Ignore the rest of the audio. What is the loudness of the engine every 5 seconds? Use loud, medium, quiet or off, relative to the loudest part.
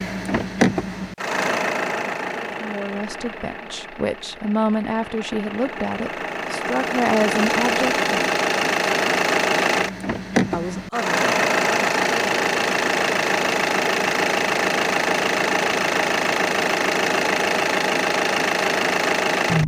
medium, loud, loud, loud.